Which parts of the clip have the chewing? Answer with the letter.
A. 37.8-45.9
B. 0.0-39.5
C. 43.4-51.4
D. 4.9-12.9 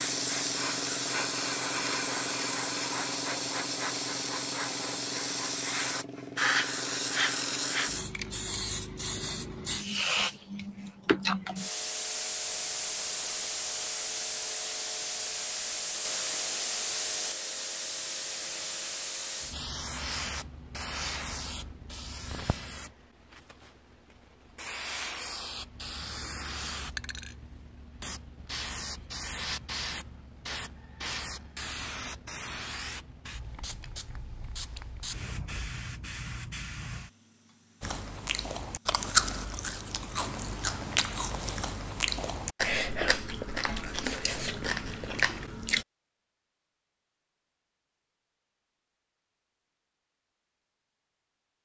A.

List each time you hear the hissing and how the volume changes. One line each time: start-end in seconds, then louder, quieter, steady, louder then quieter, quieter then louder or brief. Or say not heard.
0.0-39.5 quieter.